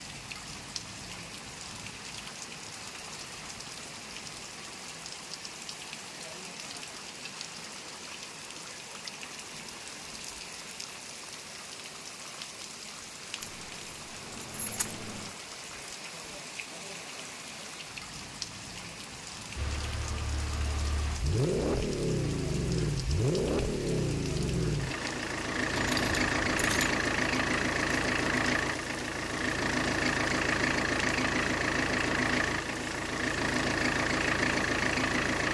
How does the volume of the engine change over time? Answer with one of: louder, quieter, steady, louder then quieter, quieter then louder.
steady.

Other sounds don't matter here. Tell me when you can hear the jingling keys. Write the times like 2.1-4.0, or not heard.
13.4-15.3, 25.7-26.9.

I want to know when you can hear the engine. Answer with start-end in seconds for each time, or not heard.
19.6-35.4.